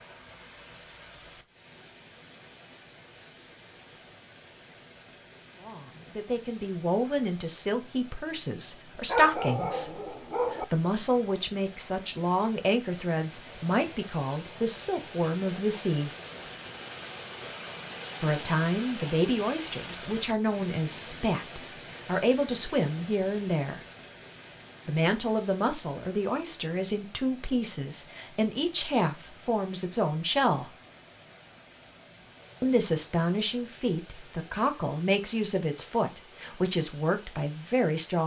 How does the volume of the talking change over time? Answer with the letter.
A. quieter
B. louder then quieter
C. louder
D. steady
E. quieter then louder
D.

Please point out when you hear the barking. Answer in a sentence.
You can hear the barking from 9.1 to 10.7 s.